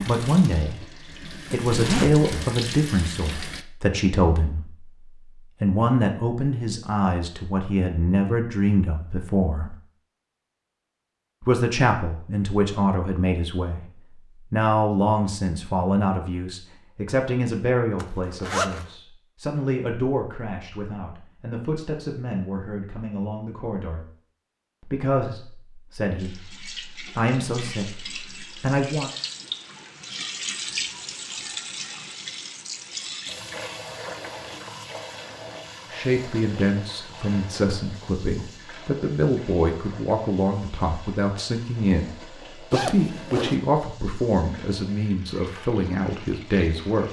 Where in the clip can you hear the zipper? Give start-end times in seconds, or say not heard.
1.7-2.5, 18.0-18.9, 42.7-43.5.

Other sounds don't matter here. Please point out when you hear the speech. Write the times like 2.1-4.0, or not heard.
0.0-4.9, 5.6-9.8, 11.4-13.8, 14.5-24.1, 24.8-29.1, 35.9-47.0.